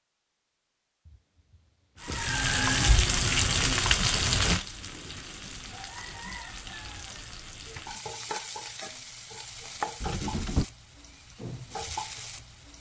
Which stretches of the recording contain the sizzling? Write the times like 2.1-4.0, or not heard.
2.0-12.7.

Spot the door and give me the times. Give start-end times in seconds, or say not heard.
1.1-2.2, 4.5-5.8, 10.0-10.7.